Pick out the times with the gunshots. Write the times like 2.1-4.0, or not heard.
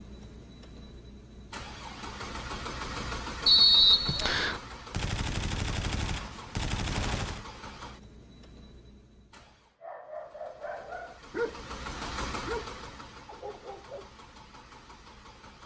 4.9-7.5.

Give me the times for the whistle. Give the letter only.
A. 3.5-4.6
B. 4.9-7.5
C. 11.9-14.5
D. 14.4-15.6
A.